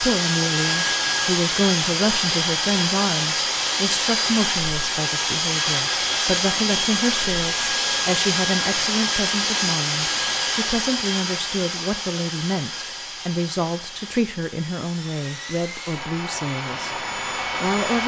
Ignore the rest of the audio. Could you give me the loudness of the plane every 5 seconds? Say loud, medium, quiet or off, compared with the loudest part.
loud, loud, medium, medium.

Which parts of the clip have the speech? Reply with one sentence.
The speech can be heard from 0.0 to 18.0 s.